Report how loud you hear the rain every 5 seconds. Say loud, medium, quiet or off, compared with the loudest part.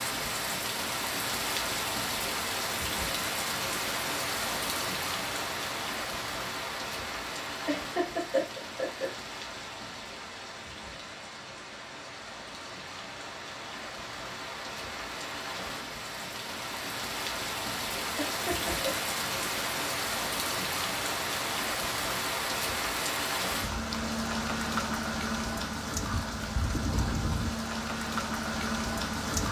loud, medium, medium, loud, loud, loud.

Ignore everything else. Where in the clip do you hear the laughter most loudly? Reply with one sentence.
The loudest moment of the laughter is at 8 seconds.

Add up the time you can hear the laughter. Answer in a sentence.
You can hear the laughter for 2 seconds altogether.